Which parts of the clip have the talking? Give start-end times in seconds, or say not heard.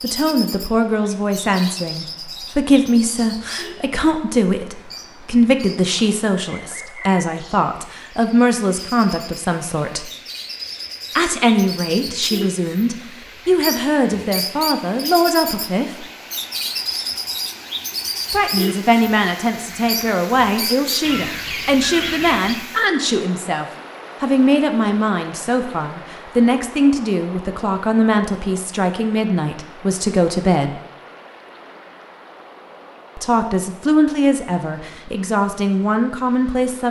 0.0-10.1, 11.2-16.1, 18.3-30.8, 33.1-36.8.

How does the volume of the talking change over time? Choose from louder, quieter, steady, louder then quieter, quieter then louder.
steady.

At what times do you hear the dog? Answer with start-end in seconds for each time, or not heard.
not heard.